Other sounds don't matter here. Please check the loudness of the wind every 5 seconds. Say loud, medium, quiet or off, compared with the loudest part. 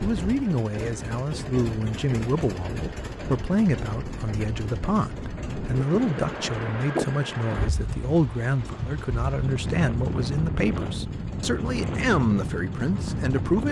medium, loud, loud.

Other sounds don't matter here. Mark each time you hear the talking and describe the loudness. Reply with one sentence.
You can hear the talking from 0.0 to 13.6 s, at a steady volume.